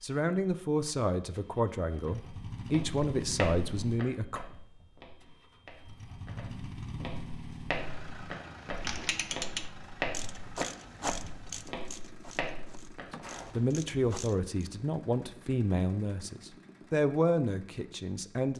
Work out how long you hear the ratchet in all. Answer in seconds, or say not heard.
6 s.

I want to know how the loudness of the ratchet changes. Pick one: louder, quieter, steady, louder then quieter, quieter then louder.
quieter then louder.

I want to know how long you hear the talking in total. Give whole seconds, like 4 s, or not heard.
10 s.